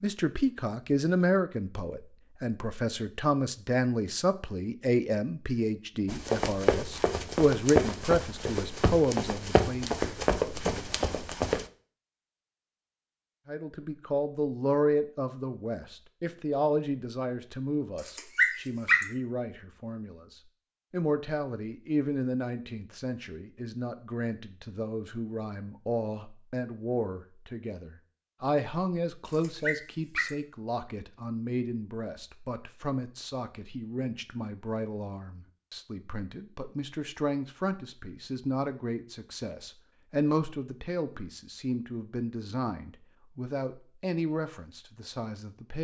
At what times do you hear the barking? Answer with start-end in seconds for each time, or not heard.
17.9-19.1, 29.2-30.3.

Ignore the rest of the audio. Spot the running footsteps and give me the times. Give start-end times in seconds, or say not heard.
6.0-11.7.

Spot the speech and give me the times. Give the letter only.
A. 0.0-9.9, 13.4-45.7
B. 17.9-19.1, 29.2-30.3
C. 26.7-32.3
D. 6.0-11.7
A.